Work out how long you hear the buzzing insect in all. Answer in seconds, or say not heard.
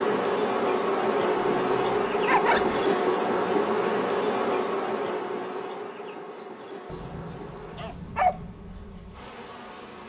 10 s.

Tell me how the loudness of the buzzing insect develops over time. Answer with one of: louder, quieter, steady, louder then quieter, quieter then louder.
quieter.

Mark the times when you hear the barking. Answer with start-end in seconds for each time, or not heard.
1.6-2.9, 6.9-8.5.